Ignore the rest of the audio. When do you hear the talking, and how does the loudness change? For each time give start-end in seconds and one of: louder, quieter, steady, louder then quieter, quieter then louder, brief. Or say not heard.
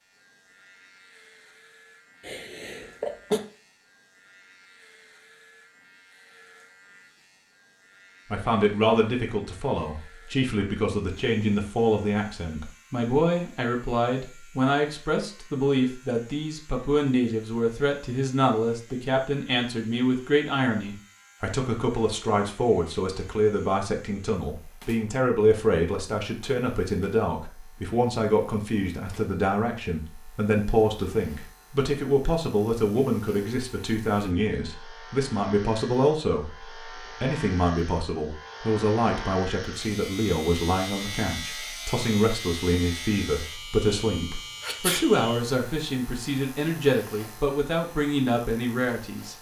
8.3-49.3 steady.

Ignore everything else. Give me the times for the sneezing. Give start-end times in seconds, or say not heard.
2.2-3.4, 44.6-45.0.